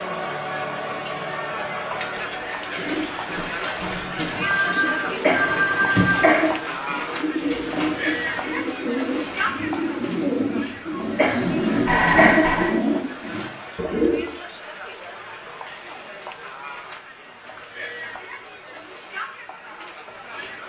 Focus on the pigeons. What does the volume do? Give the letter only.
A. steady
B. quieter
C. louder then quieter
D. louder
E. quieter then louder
D.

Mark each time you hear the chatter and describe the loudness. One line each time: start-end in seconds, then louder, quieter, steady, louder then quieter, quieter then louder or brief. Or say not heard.
0.0-20.6 quieter.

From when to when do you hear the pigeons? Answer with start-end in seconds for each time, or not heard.
2.6-14.3.